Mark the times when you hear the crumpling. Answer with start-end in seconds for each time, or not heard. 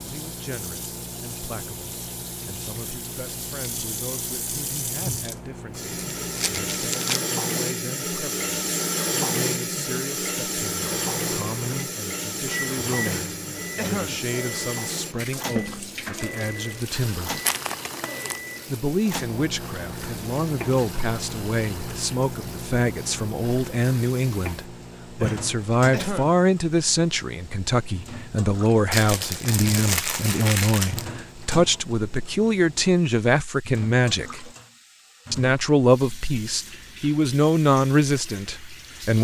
6.2-7.2, 17.4-18.4, 28.9-31.1.